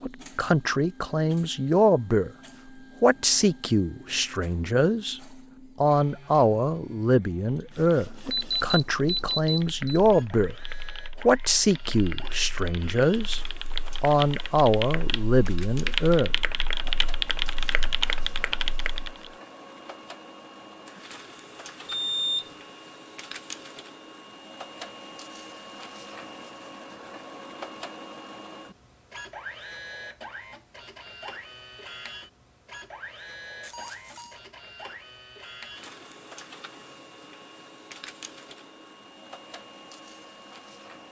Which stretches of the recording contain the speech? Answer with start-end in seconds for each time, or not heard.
0.0-2.3, 3.0-5.2, 5.8-10.6, 11.2-16.4.